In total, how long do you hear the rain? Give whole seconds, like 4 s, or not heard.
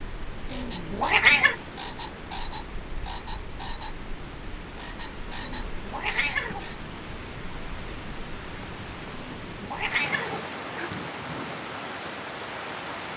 13 s.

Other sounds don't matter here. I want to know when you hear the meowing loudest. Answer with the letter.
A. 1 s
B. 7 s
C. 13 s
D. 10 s
A.